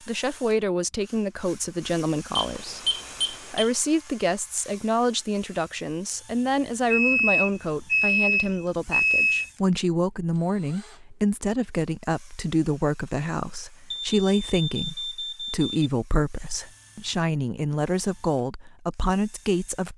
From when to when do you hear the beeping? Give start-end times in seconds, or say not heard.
2.4-3.7, 6.9-9.5, 13.9-15.7.